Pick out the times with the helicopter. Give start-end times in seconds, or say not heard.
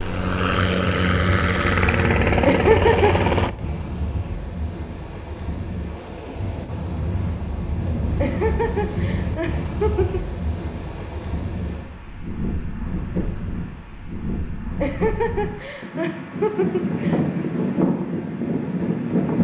0.0-3.5.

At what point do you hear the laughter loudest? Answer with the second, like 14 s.
3 s.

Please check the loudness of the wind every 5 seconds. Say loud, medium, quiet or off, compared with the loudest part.
medium, medium, medium, loud.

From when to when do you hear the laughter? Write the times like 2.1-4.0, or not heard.
2.5-3.1, 8.2-10.2, 14.8-17.4.